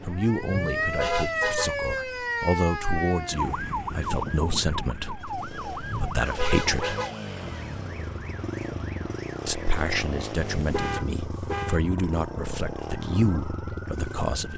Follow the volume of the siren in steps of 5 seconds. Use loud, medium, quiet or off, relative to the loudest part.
loud, medium, quiet.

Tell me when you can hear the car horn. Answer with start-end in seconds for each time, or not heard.
0.4-2.0, 5.8-7.2, 10.4-11.8.